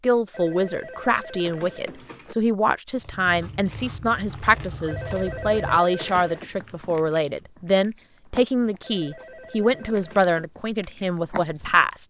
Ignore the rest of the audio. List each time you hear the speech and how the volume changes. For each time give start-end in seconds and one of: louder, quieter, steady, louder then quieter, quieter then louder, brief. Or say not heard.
0.0-12.0 steady.